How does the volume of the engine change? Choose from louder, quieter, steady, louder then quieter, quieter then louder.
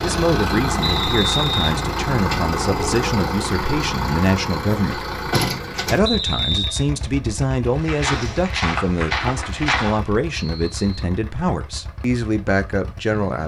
quieter.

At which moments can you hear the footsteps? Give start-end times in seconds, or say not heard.
7.7-10.1.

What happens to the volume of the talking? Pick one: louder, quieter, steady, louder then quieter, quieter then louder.
steady.